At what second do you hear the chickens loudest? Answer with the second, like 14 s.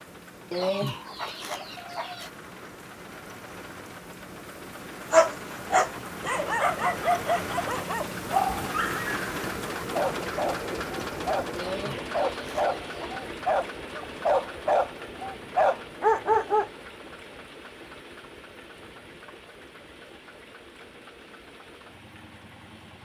1 s.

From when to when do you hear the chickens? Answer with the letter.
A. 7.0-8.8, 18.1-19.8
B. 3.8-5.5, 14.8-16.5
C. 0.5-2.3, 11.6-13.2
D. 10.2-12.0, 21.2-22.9
C.